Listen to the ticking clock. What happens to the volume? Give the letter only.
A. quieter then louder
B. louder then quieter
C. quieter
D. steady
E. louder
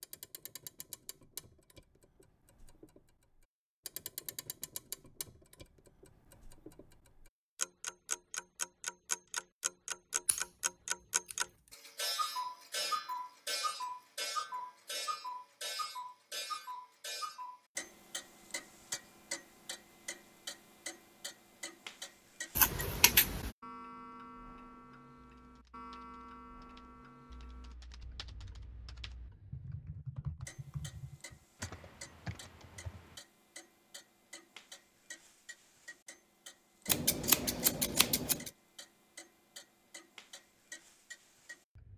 B.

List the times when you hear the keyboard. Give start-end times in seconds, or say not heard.
25.4-33.2.